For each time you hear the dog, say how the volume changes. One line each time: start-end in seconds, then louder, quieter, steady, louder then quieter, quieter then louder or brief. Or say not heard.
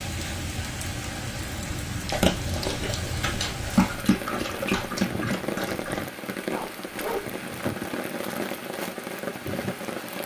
2.0-7.3 louder then quieter.